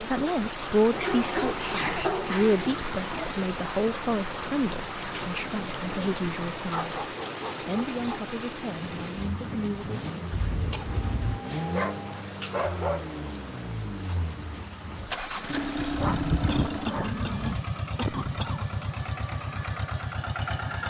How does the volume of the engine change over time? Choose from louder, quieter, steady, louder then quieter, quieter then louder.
louder.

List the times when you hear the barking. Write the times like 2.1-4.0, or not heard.
0.9-2.9, 6.7-8.3, 11.1-13.2, 15.8-17.6.